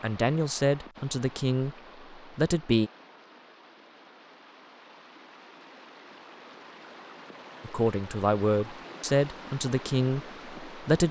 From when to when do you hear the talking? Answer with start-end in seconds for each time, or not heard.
0.0-2.9, 7.6-11.0.